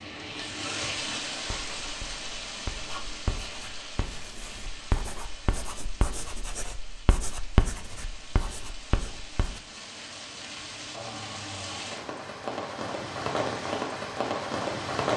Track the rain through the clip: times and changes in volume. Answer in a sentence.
You can hear the rain from 0.0 to 15.1 s, getting quieter then louder.